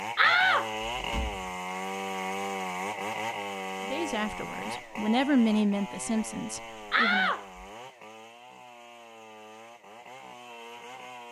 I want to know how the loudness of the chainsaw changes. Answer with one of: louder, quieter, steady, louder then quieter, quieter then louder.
quieter.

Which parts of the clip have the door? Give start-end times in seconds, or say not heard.
0.1-1.4, 6.9-7.7.